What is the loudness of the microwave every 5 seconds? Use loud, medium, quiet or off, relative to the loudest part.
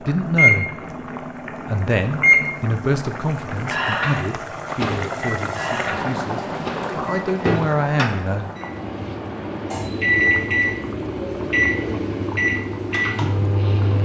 loud, medium, loud.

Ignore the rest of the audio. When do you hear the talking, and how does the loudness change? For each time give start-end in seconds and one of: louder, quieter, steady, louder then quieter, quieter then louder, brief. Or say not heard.
0.0-0.7 brief
1.6-8.5 quieter then louder.